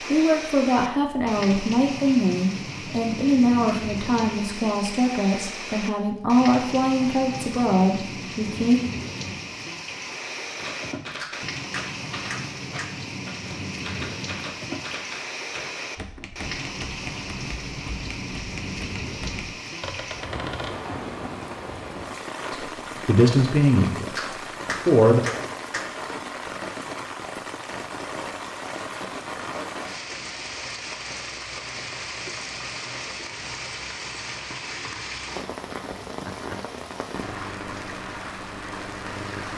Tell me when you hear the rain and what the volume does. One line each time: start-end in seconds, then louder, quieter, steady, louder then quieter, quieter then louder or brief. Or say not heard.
0.0-39.5 steady.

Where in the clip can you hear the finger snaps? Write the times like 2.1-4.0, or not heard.
11.2-12.9, 24.1-25.9.